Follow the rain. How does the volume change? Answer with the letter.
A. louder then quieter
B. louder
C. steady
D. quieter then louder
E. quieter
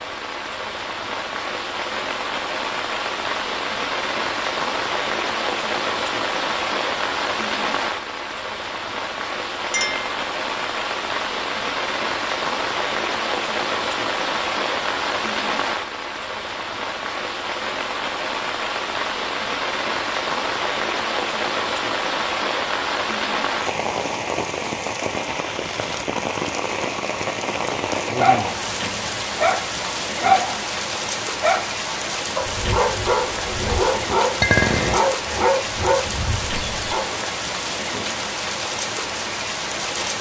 C.